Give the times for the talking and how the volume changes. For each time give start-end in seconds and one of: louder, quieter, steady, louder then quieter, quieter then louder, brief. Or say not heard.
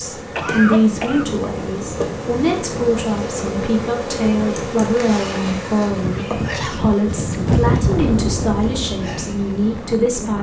0.0-10.3 steady.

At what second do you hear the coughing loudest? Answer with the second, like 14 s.
1 s.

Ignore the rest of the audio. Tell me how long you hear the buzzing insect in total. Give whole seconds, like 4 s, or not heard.
10 s.